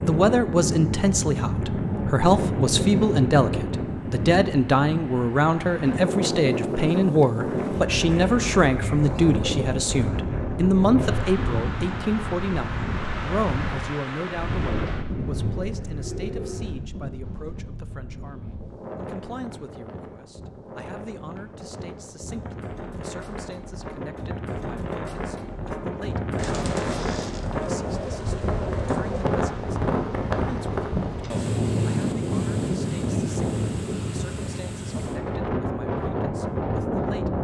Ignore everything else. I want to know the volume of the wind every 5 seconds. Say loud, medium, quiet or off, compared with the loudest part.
loud, loud, loud, medium, medium, loud, loud, loud.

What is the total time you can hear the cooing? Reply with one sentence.
The cooing can be heard for 7 seconds in total.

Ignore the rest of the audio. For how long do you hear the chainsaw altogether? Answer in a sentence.
The chainsaw can't be heard in this clip.